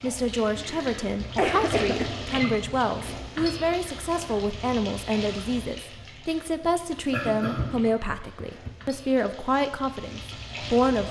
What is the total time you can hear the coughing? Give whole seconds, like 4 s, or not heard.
3 s.